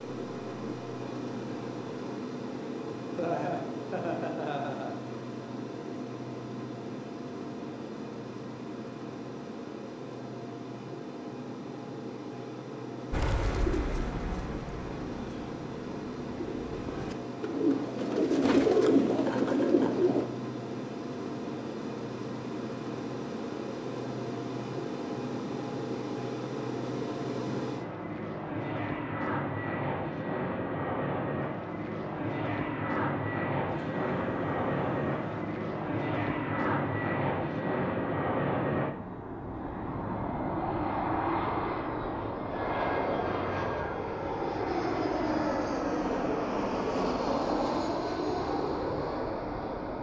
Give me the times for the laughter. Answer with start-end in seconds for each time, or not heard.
3.1-5.0, 19.1-20.1, 33.6-35.5.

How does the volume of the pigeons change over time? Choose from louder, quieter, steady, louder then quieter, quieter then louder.
quieter then louder.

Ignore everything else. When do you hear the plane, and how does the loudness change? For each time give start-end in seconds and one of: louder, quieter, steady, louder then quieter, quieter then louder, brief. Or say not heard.
0.0-49.9 louder.